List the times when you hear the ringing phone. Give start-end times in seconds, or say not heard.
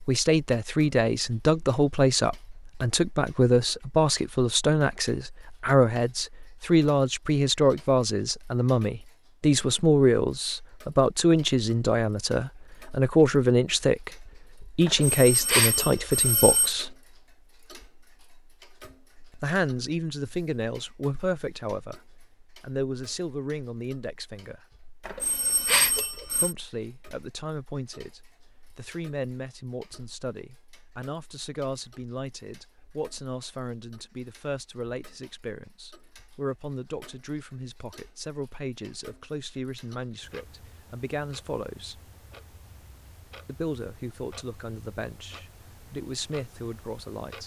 14.8-16.8, 25.1-26.6.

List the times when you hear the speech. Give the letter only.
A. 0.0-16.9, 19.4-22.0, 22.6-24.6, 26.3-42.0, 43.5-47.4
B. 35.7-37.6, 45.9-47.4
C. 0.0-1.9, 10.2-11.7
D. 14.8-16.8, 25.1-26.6
A.